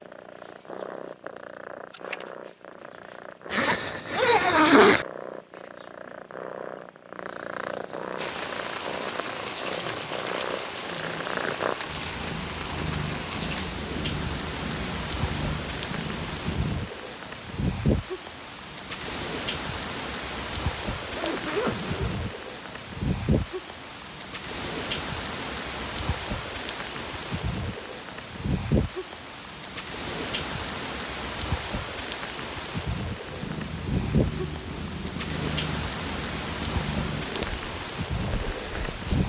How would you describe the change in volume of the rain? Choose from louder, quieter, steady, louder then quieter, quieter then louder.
steady.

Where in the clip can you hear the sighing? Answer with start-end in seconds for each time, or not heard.
not heard.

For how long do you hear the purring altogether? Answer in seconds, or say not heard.
23 s.